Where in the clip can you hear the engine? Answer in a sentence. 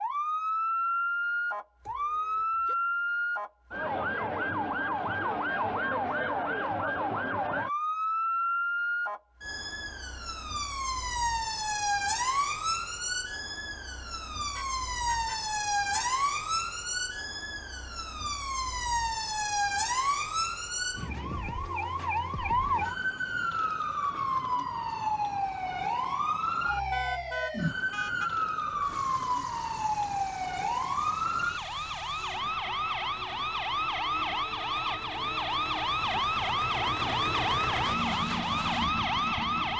The engine can be heard from 28.7 to 39.7 s.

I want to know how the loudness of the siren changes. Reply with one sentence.
The volume of the siren stays about the same.